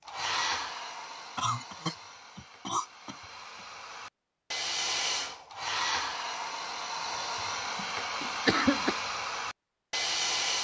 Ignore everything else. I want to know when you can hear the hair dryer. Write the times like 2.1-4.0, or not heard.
0.1-10.5.